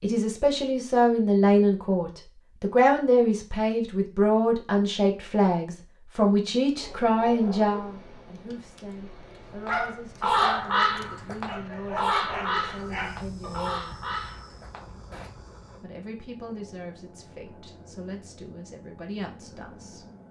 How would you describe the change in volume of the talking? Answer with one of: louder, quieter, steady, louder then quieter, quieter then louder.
quieter.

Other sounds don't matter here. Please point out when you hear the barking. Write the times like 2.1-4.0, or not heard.
6.8-13.6.